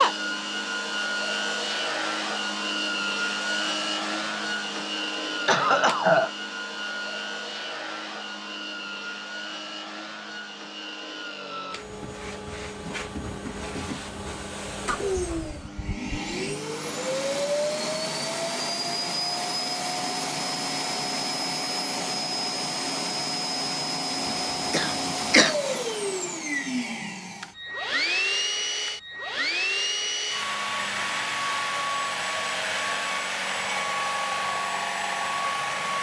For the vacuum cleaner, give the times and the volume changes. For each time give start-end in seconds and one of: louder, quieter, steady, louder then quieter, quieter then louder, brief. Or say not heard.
0.0-35.9 quieter then louder.